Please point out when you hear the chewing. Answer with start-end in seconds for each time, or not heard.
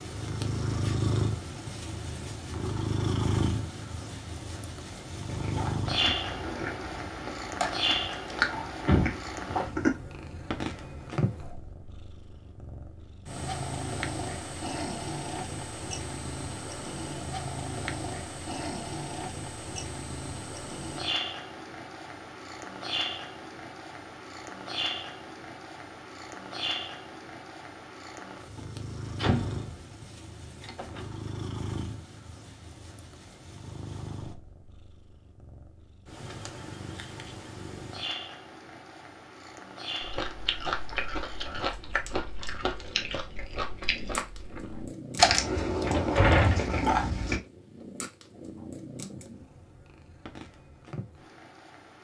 5.2-9.9, 40.0-47.4.